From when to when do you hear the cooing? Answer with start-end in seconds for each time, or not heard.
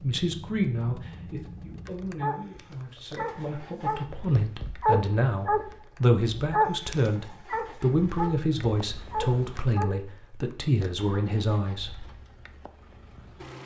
not heard.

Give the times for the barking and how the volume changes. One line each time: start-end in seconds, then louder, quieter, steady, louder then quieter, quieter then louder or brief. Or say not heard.
2.0-10.0 louder then quieter.